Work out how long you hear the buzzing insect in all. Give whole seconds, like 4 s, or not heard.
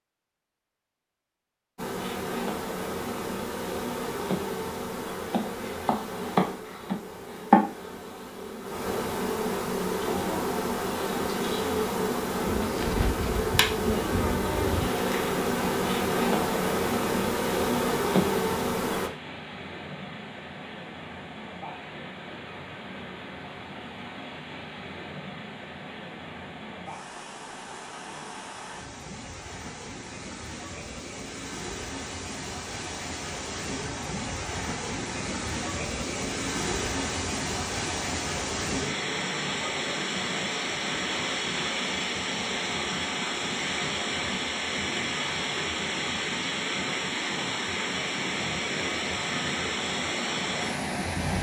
17 s.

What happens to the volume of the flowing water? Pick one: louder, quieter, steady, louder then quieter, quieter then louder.
louder.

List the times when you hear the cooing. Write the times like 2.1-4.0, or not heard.
12.4-14.9.